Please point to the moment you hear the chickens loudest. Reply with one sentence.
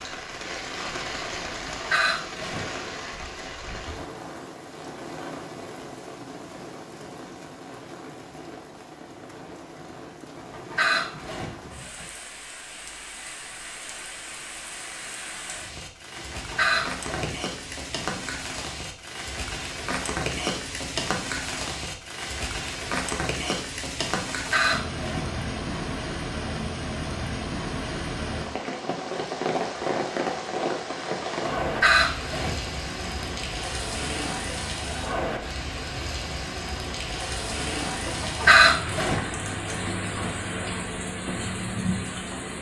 The loudest moment of the chickens is at 39 seconds.